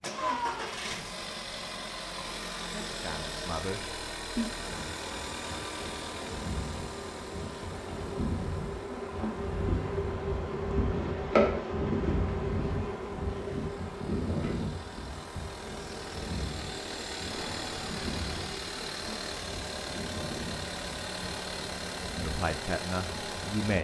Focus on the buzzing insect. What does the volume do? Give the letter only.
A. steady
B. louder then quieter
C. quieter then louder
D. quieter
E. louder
B.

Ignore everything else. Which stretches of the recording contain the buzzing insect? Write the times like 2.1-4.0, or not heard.
4.5-23.5.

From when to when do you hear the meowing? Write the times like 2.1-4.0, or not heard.
0.1-0.9, 17.2-18.4.